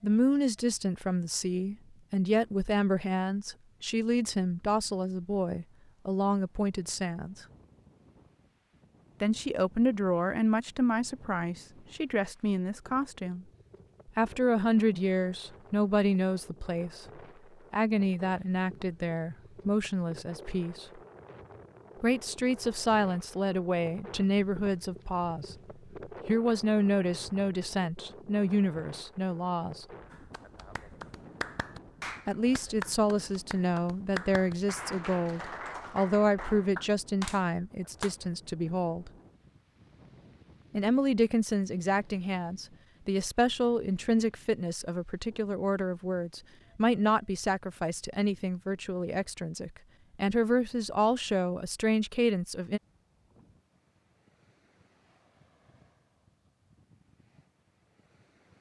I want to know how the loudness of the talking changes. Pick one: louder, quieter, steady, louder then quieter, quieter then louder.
steady.